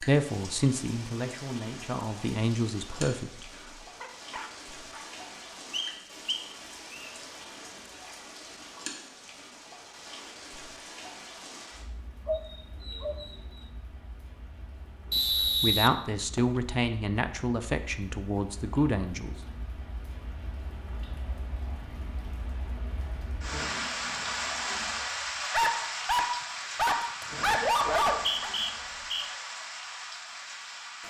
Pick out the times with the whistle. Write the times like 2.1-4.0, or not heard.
5.7-7.1, 15.1-16.6, 28.0-29.2.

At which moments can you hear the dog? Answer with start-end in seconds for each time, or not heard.
4.0-5.0, 12.2-13.7, 25.5-28.5.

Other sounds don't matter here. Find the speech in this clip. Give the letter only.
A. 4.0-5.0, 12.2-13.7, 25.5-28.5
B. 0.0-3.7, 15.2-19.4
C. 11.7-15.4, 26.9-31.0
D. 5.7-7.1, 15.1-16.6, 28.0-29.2
B.